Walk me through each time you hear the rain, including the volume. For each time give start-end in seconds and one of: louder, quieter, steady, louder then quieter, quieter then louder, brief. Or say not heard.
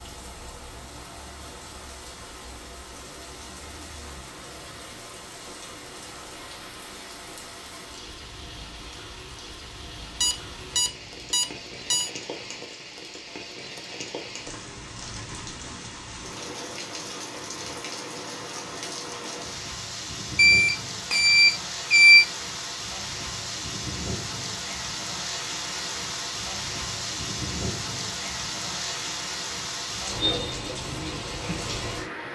0.0-32.3 louder.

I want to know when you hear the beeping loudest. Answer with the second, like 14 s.
22 s.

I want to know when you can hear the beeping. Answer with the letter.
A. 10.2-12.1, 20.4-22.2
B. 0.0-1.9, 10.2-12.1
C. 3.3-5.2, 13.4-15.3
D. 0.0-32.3
A.